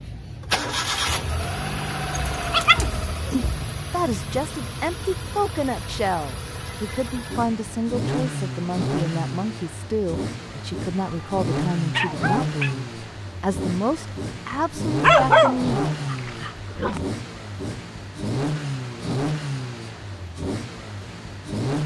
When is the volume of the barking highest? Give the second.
15 s.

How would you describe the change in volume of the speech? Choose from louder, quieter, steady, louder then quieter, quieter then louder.
steady.